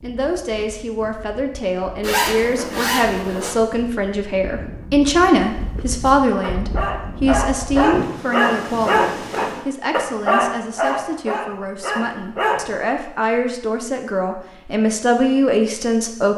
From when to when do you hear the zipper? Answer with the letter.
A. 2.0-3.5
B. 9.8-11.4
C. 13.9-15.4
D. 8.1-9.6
A.